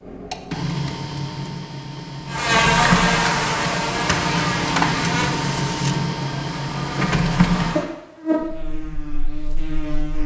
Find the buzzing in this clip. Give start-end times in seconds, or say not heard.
2.3-10.2.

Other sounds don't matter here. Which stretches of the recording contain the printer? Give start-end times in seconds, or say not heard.
0.0-7.8.